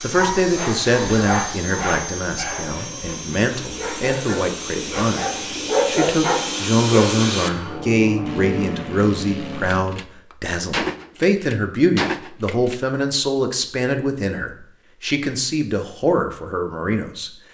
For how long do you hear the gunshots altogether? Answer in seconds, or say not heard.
3 s.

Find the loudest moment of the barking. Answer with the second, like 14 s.
6 s.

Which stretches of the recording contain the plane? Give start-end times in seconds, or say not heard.
0.0-9.8.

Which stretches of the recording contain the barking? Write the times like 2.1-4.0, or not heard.
0.1-7.0.